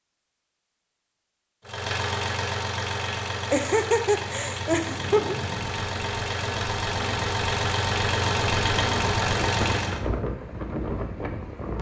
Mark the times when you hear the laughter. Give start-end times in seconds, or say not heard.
3.5-5.3.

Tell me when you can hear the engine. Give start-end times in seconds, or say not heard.
1.6-10.0.